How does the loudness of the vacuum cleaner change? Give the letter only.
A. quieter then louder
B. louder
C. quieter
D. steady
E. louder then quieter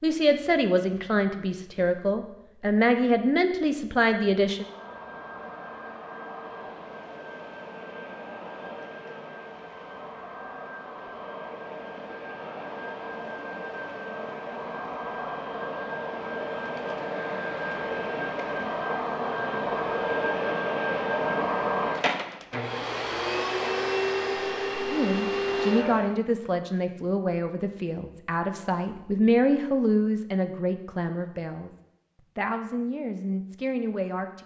B.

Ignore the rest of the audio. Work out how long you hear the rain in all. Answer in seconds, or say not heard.
not heard.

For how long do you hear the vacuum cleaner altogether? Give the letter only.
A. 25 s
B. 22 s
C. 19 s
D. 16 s
B.